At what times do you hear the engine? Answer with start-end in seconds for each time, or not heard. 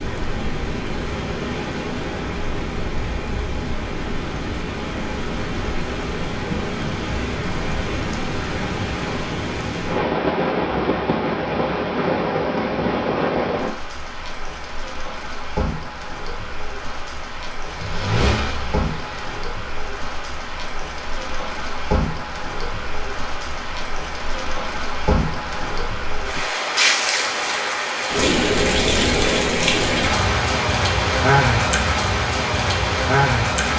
17.6-19.4.